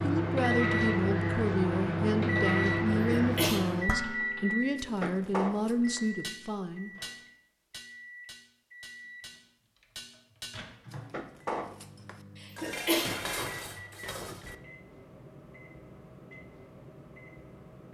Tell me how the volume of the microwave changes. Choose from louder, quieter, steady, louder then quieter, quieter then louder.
quieter.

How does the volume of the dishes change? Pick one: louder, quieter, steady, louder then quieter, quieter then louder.
quieter then louder.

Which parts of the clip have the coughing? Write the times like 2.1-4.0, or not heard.
2.9-3.6, 12.3-13.1.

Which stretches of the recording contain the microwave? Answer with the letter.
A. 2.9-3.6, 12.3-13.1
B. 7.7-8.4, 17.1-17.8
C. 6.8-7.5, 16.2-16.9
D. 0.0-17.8
D.